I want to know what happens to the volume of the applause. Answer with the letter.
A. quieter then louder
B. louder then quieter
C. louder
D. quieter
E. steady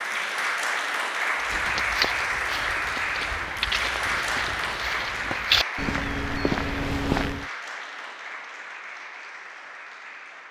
D.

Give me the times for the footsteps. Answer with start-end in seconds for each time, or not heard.
1.4-7.5.